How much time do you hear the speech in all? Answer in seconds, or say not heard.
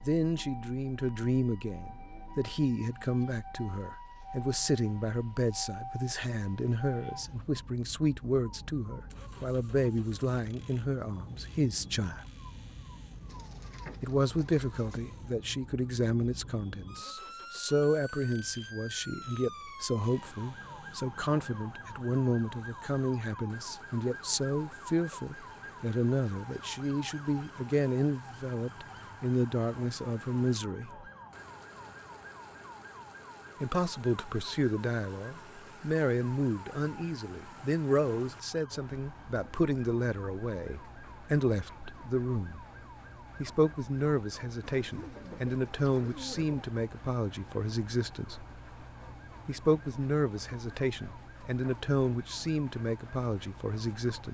48 s.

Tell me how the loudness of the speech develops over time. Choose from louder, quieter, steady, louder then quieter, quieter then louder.
steady.